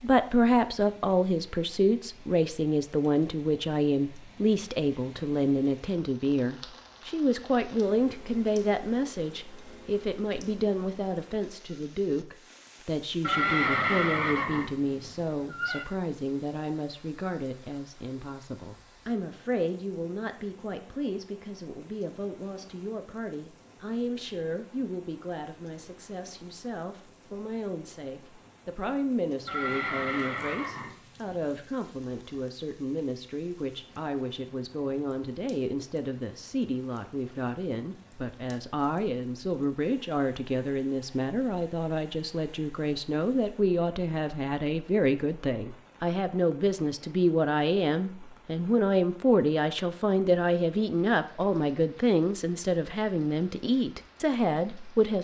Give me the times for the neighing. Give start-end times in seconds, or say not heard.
13.2-15.8, 29.4-31.8.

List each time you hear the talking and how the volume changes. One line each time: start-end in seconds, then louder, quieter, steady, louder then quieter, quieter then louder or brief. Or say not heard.
0.0-55.1 quieter then louder.